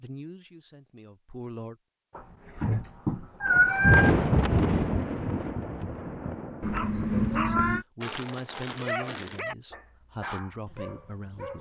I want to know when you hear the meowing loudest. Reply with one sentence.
The volume of the meowing peaks at 4 seconds.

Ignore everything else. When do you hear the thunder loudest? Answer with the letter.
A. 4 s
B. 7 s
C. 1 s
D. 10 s
A.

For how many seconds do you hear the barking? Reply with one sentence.
The barking can be heard for 5 seconds in total.